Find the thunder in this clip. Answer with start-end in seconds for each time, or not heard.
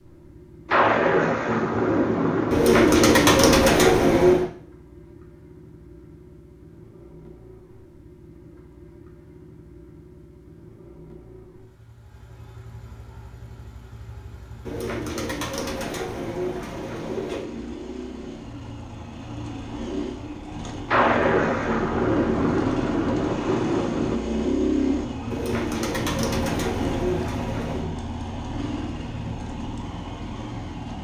0.7-4.0, 20.9-24.1.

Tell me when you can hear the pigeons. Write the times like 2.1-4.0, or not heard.
2.5-4.5, 14.7-17.4, 25.3-27.9.